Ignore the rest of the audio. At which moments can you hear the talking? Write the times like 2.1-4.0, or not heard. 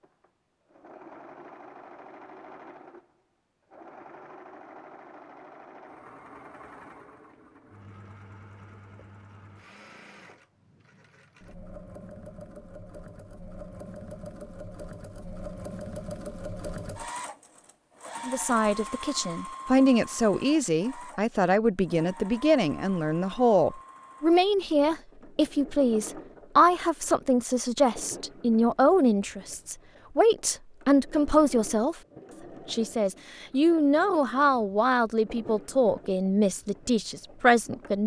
18.2-31.9, 32.6-38.0.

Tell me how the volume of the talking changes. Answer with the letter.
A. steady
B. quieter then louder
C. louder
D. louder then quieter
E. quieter
A.